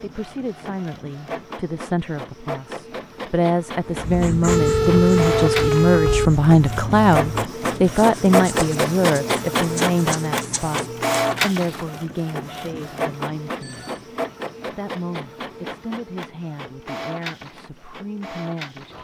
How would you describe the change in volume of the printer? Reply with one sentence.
The loudness of the printer goes up, then down.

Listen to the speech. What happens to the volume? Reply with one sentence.
The loudness of the speech goes up, then down.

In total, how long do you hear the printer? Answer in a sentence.
The printer can be heard for 19 seconds in total.